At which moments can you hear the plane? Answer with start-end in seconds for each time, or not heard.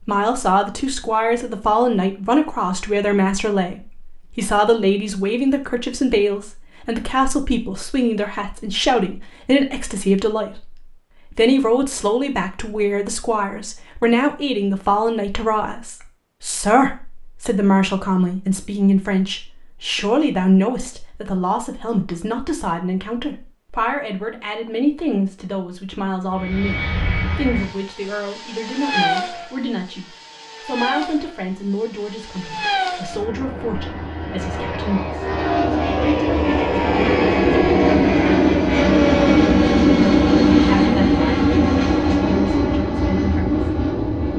26.4-44.3.